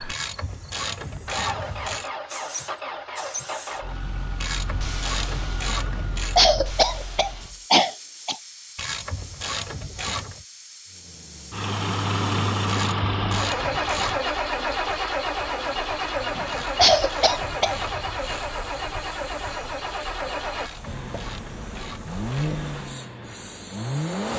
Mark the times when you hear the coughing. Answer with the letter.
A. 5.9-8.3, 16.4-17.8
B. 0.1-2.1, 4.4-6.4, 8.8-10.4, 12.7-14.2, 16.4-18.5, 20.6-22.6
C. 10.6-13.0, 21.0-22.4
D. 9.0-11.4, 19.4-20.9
A.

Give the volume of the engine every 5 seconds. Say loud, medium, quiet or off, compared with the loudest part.
medium, quiet, loud, loud, medium.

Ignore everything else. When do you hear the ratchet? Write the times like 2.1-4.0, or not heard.
0.1-2.1, 4.4-6.4, 8.8-10.4, 12.7-14.2, 16.4-18.5, 20.6-22.6.